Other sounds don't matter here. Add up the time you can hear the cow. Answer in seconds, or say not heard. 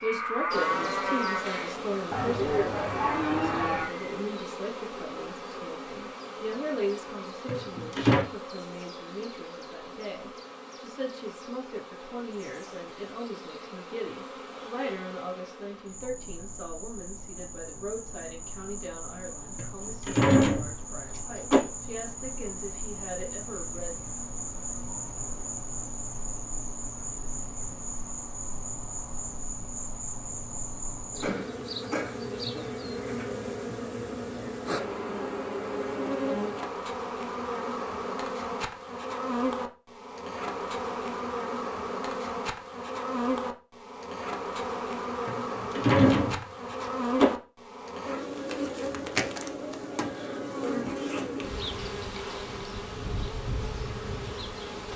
4 s.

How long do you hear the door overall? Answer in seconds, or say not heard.
5 s.